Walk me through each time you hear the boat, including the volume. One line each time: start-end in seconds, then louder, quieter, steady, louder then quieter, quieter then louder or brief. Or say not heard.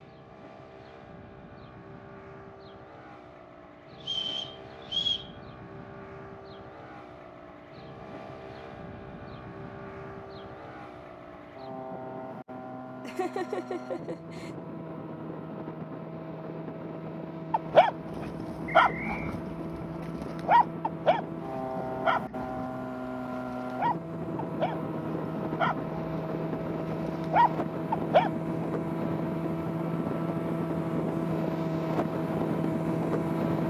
0.0-33.6 louder.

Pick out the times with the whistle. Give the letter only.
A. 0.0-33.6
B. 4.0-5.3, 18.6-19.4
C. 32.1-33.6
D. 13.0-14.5
B.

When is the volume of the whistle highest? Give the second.
5 s.